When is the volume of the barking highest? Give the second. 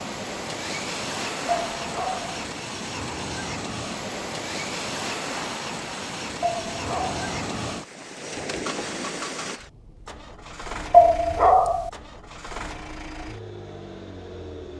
11 s.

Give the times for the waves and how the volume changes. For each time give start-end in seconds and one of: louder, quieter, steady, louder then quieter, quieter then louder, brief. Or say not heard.
0.0-9.6 steady.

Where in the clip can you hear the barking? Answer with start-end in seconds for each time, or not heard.
1.5-2.4, 6.4-7.2, 10.9-11.9.